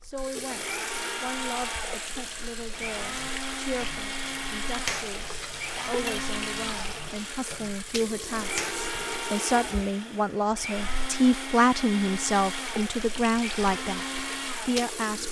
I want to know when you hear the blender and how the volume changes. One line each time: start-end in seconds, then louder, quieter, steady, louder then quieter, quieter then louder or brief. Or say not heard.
0.5-15.2 steady.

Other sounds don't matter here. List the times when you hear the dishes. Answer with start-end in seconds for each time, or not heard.
2.8-9.2.